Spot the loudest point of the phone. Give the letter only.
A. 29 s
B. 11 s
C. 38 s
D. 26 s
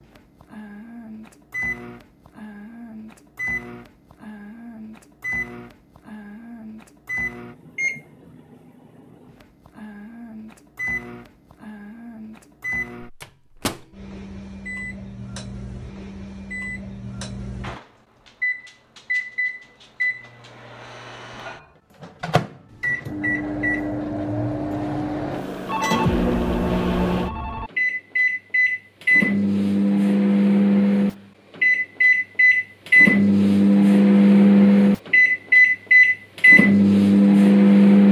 D.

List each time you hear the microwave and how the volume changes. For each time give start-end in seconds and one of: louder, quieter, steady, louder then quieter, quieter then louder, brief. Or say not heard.
0.0-38.0 louder.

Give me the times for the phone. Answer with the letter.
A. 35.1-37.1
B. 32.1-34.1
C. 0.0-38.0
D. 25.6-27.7
D.